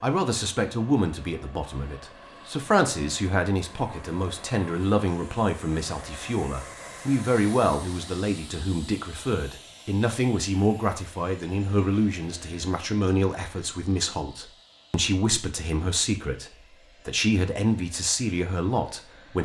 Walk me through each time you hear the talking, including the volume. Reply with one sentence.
The talking can be heard from 0.0 to 19.4 s, at a steady volume.